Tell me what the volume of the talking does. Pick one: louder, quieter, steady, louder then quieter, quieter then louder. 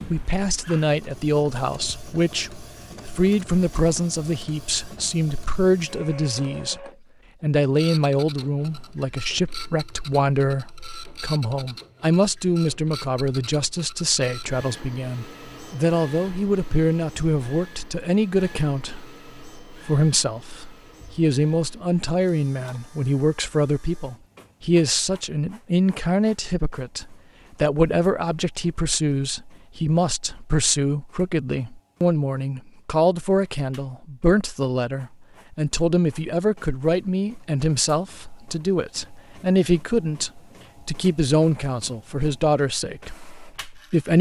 steady.